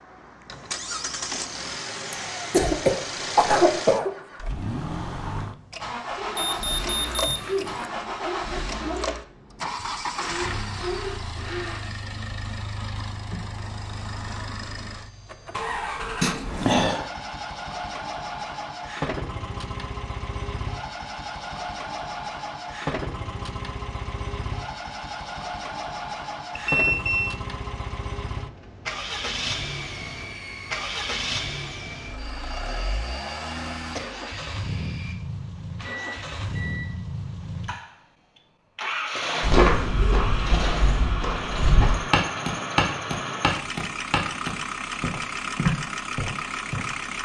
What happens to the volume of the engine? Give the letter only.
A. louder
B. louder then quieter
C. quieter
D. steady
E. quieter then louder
D.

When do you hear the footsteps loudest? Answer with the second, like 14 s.
40 s.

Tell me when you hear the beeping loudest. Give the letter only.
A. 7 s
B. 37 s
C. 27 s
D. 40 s
C.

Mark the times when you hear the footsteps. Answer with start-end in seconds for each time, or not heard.
39.4-47.2.